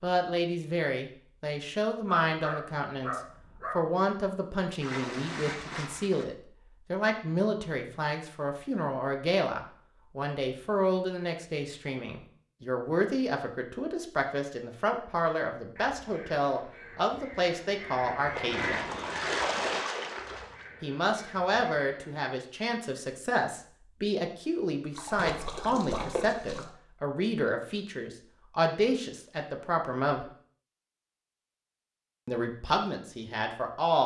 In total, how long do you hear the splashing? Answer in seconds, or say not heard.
6 s.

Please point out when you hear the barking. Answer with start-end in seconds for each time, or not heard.
2.3-3.8.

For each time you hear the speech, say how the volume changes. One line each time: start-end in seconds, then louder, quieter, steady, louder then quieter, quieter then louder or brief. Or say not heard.
0.0-18.8 steady
20.8-30.2 steady
32.2-34.0 brief.